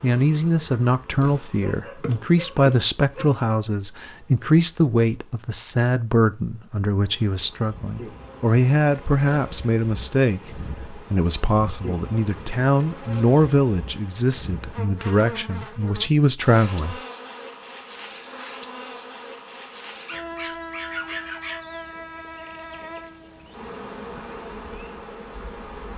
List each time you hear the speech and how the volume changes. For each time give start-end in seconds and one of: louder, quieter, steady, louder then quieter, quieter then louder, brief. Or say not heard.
0.0-17.0 steady.